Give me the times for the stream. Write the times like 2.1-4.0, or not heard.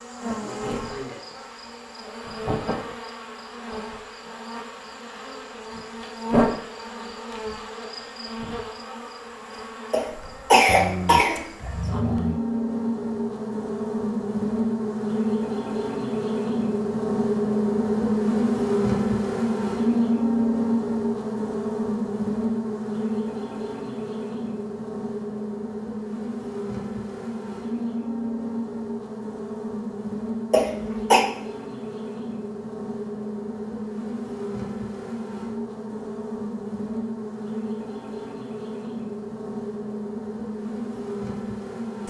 not heard.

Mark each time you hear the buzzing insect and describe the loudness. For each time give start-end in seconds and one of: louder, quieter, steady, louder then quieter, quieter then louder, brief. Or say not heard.
0.0-42.0 louder then quieter.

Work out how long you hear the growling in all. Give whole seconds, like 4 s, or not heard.
2 s.